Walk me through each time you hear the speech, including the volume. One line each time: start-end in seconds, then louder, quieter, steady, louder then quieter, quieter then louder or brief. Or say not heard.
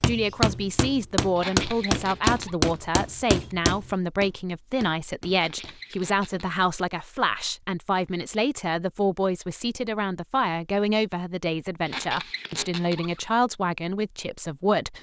0.1-14.9 steady.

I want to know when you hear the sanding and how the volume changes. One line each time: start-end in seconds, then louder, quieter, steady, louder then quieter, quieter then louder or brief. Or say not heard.
not heard.